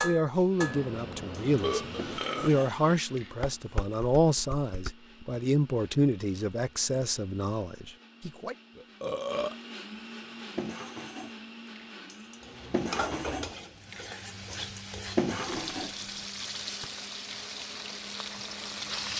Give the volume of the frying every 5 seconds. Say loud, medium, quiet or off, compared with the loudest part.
off, off, loud, loud.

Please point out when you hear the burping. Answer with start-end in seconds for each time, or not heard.
0.6-2.5, 8.8-9.6, 15.3-16.3.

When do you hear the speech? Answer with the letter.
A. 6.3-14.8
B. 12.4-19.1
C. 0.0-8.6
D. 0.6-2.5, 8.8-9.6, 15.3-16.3
C.